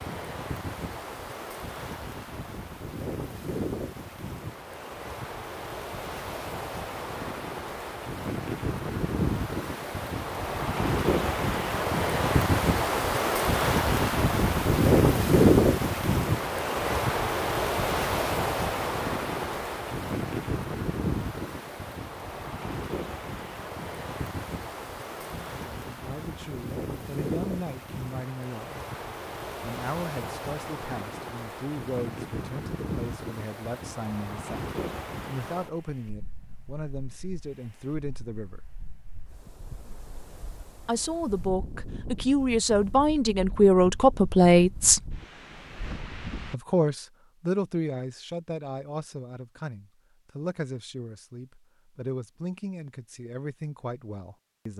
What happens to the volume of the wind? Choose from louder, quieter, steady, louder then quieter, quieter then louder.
louder then quieter.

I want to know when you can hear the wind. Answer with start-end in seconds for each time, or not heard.
0.0-46.5.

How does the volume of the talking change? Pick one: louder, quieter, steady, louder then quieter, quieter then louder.
louder then quieter.